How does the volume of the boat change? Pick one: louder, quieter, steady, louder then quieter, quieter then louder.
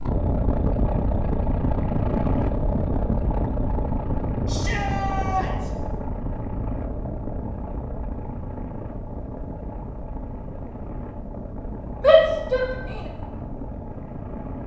quieter.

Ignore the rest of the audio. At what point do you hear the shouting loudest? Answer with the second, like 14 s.
12 s.